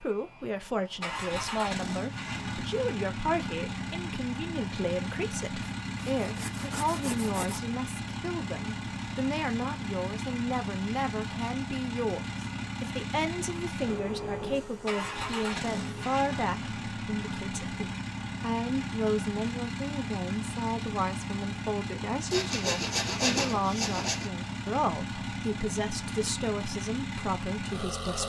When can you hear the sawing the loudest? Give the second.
23 s.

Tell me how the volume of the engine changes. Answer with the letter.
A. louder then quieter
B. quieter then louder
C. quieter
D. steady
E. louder
D.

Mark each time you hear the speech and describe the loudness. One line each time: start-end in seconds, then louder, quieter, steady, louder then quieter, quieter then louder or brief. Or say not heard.
0.0-28.2 steady.